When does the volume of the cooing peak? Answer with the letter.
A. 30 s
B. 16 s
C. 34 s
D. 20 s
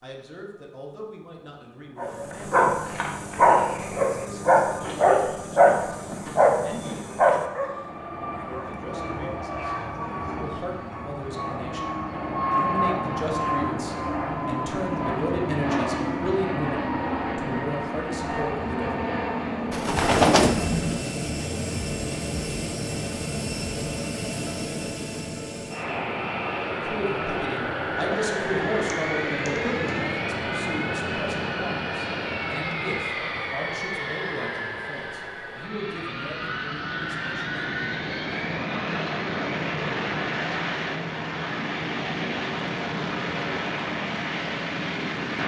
D.